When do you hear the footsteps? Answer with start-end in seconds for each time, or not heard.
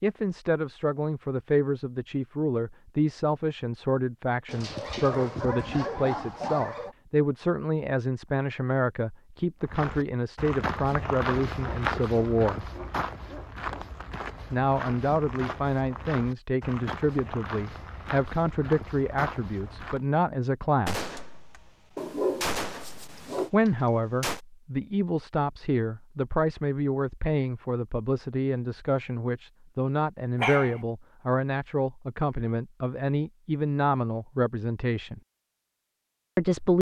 9.6-20.1.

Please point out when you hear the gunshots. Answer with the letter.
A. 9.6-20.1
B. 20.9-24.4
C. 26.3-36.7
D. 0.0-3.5
B.